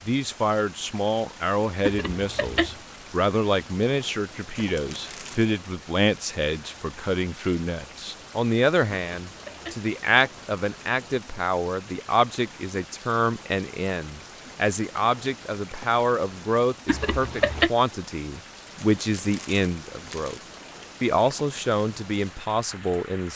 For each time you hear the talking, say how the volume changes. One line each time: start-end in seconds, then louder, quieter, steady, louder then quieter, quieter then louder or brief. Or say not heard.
0.1-20.4 steady
21.0-23.3 brief.